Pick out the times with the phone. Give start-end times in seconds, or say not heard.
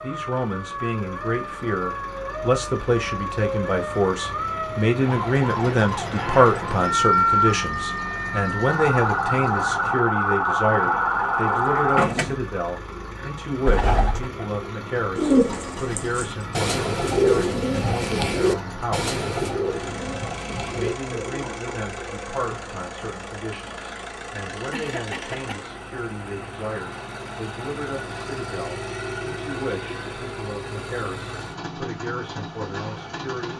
not heard.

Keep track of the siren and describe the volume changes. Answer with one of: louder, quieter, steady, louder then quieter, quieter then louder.
louder.